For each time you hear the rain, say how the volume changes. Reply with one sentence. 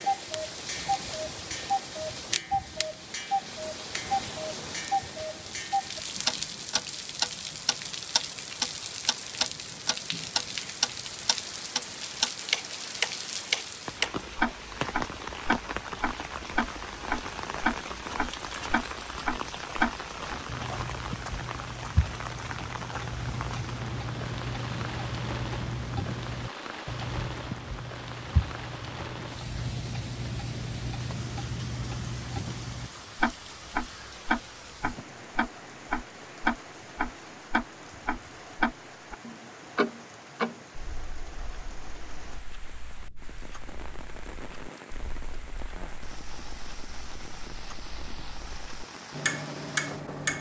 The rain can be heard from 0.0 to 50.3 s, getting quieter.